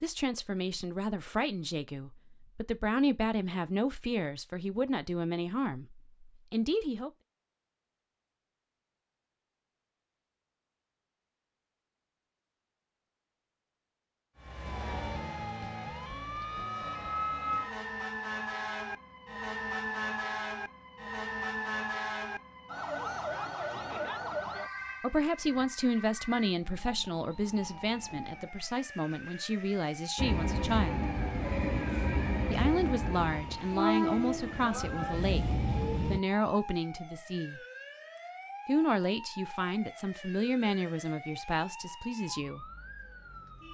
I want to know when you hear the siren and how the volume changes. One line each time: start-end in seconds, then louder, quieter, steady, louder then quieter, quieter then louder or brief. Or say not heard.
14.3-43.6 quieter.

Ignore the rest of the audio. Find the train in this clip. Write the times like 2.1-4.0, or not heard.
30.1-36.2.